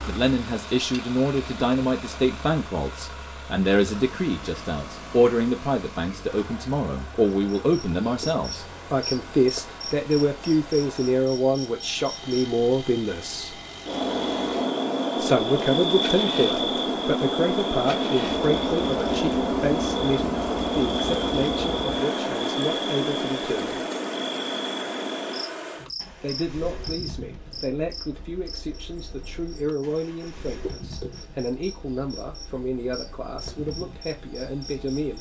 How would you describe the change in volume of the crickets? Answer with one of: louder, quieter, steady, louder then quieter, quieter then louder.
louder then quieter.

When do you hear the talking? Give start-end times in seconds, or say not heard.
0.1-13.6, 15.2-23.8, 26.2-35.1.